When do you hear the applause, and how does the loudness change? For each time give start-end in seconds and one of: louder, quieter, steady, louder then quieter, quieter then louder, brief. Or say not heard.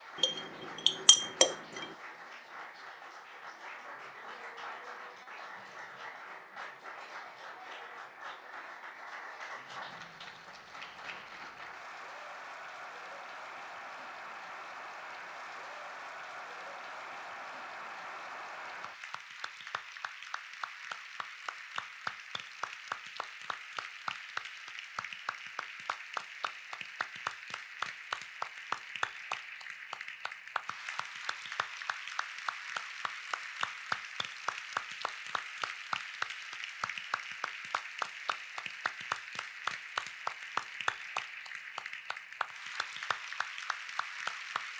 0.0-44.7 louder.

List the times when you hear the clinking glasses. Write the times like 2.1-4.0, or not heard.
0.2-1.9.